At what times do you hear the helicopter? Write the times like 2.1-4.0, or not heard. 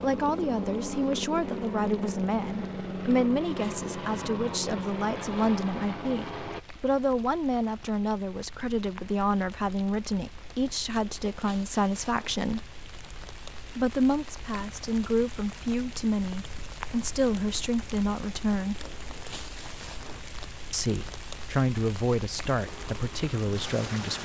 0.0-6.7, 22.6-24.1.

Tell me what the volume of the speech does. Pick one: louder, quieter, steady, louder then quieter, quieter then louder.
steady.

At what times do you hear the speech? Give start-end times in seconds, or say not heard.
0.0-12.7, 13.8-18.8, 20.7-24.1.